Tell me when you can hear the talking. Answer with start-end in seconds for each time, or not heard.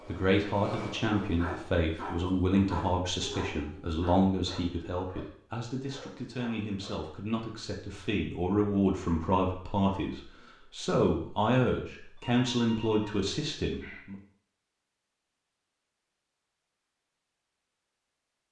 0.1-14.2.